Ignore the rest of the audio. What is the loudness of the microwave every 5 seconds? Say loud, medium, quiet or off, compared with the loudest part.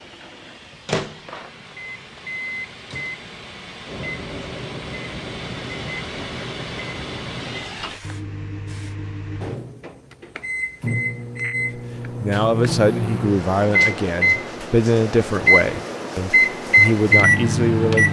quiet, quiet, medium, loud.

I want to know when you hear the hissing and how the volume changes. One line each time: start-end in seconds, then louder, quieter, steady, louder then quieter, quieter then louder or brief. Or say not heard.
0.0-8.9 louder.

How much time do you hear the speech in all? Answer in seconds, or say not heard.
6 s.